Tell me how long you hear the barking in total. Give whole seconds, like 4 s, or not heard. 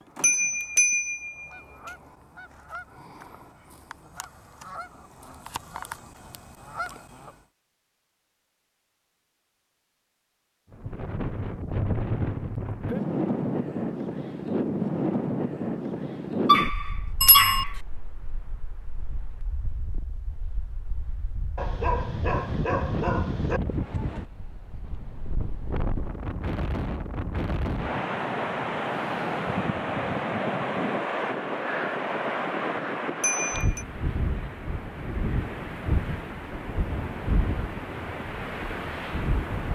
3 s.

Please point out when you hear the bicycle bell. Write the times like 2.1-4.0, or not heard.
0.2-1.6, 17.2-17.6, 33.2-33.9.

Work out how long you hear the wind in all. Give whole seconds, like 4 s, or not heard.
29 s.